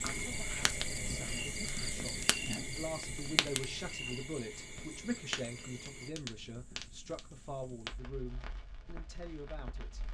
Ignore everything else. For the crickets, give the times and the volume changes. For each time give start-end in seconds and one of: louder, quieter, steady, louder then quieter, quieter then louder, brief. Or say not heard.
0.0-6.1 quieter.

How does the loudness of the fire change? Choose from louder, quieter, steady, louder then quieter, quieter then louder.
quieter.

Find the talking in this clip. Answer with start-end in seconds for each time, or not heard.
0.1-10.0.